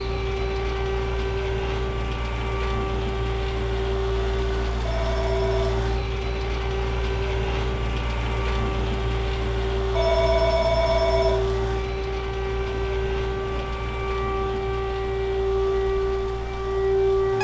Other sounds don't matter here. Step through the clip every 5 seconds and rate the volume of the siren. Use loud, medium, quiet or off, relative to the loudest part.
medium, medium, medium, loud.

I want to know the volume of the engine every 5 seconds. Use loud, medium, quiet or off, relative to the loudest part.
loud, loud, loud, medium.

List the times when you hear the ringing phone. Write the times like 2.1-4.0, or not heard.
4.8-5.7, 9.9-11.4.